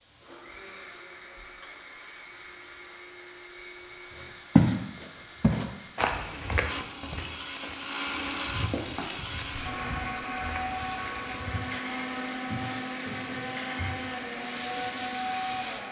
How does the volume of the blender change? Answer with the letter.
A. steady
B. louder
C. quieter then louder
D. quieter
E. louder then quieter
B.